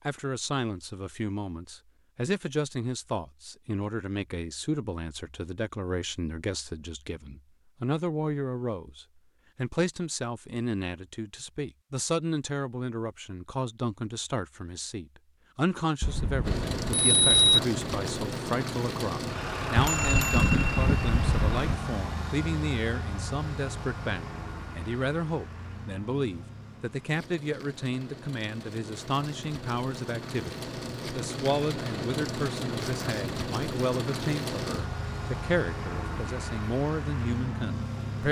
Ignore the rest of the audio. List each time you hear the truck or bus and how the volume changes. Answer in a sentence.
The truck or bus can be heard from 16.4 to 38.2 s, getting quieter then louder.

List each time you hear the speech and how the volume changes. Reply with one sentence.
The speech can be heard from 0.1 to 38.2 s, at a steady volume.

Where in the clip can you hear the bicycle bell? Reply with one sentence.
The bicycle bell can be heard from 16.0 to 17.6 s and from 19.8 to 21.8 s.